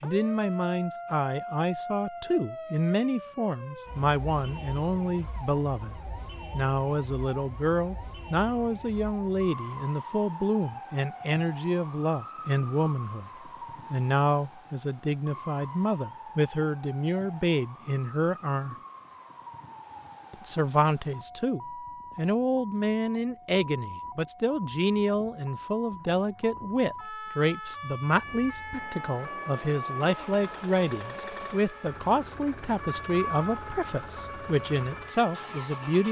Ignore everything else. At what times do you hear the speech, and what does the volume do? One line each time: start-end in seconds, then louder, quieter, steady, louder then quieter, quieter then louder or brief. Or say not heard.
0.0-18.8 steady
20.3-36.0 steady.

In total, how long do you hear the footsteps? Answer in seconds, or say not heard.
not heard.